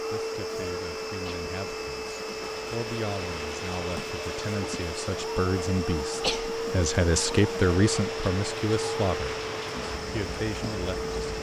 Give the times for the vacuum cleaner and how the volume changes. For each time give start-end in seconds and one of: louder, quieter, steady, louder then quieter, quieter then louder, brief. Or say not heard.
0.0-11.3 steady.